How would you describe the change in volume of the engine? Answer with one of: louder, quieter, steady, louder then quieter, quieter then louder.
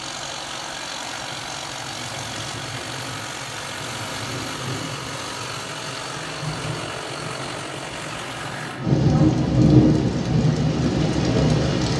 steady.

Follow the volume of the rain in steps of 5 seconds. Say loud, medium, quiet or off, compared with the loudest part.
quiet, loud, loud.